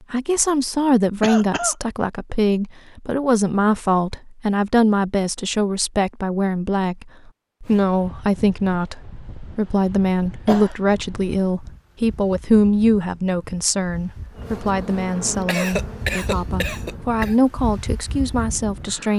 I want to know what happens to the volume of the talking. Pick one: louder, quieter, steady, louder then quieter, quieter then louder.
steady.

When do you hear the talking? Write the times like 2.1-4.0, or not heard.
0.1-19.1.